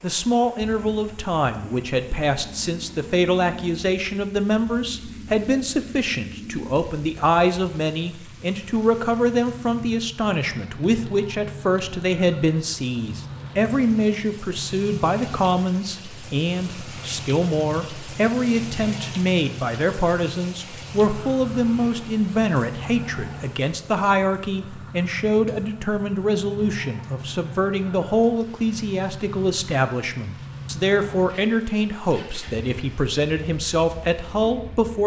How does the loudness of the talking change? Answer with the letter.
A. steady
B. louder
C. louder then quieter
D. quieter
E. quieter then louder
A.